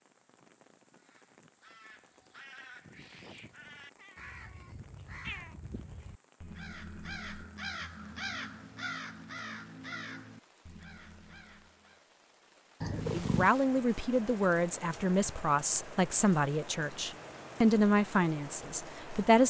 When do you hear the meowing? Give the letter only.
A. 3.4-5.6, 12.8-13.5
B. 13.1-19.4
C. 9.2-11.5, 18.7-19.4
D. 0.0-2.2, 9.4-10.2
A.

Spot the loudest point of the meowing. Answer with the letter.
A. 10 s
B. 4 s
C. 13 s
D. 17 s
C.